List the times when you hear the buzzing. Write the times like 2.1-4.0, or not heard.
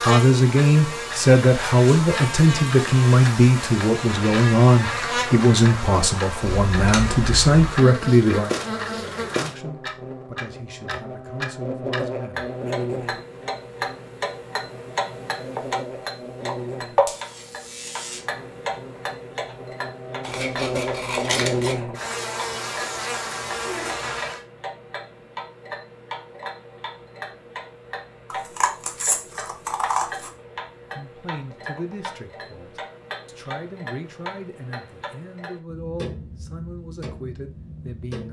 0.0-24.4.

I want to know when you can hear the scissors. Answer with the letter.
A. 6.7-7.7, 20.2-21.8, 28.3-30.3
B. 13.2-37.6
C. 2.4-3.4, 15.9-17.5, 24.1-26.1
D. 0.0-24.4
A.